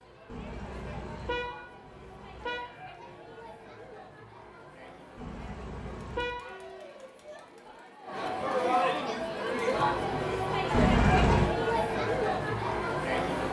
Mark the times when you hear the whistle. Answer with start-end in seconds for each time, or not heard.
not heard.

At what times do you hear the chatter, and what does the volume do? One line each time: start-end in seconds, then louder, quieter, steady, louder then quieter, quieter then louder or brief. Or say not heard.
0.0-13.4 louder.